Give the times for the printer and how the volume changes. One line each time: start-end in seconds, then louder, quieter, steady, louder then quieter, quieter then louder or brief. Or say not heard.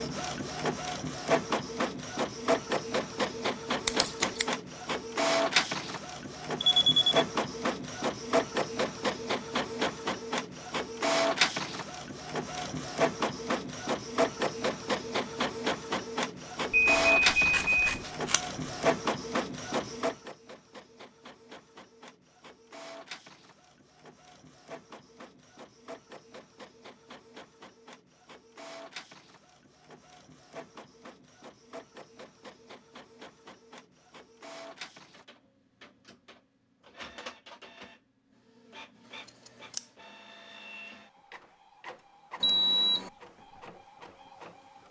0.0-44.8 quieter.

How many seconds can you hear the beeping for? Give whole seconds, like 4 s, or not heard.
3 s.